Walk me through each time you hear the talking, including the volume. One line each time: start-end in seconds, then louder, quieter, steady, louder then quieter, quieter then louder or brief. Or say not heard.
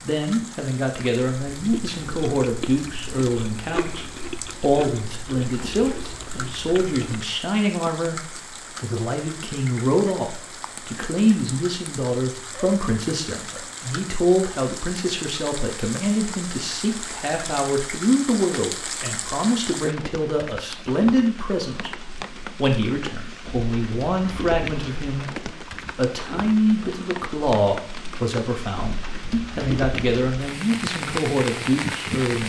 0.0-32.4 steady.